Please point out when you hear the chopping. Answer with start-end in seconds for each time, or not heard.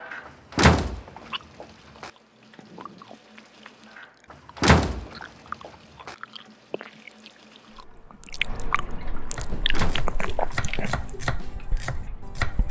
9.3-12.6.